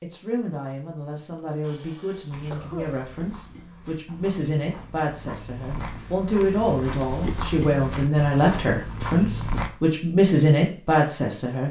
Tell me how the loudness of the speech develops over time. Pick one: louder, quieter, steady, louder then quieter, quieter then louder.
louder.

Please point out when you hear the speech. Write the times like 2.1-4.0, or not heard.
0.0-11.6.